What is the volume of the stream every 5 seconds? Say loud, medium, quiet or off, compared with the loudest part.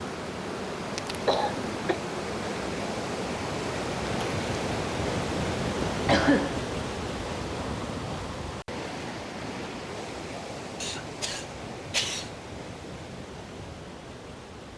loud, loud, medium.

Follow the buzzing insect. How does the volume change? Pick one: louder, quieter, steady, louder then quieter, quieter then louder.
steady.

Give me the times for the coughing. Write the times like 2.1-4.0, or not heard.
1.2-2.0, 6.0-6.5, 10.8-12.3.